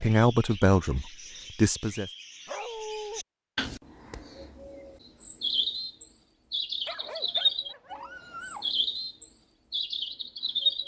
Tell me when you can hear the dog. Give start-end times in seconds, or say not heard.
2.5-3.2, 6.8-8.8.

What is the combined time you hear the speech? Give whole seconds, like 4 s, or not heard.
2 s.